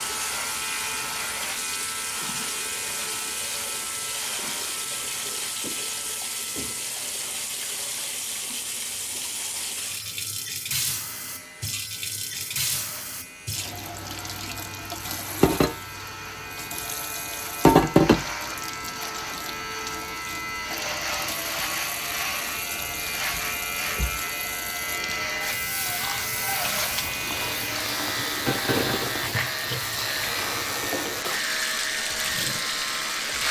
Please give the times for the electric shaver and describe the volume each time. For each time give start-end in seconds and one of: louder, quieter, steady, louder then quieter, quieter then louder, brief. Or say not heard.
0.0-33.4 quieter then louder.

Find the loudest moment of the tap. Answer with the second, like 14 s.
18 s.